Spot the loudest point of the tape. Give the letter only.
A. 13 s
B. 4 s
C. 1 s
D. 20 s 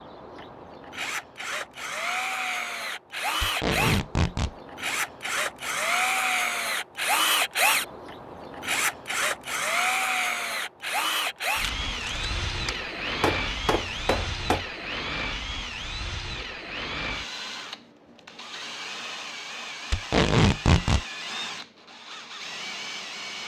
D.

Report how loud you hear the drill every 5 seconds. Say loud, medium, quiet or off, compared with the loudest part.
medium, loud, loud, medium, medium.